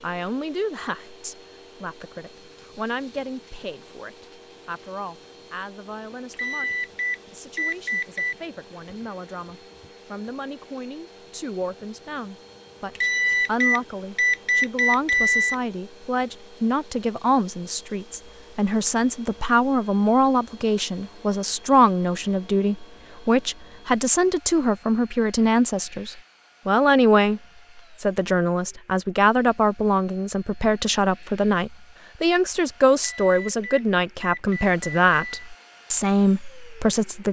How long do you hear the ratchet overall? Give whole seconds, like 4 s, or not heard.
not heard.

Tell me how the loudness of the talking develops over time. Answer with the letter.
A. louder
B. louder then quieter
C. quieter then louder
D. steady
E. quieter
A.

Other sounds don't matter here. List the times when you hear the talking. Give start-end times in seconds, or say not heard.
0.0-27.4, 28.0-37.2.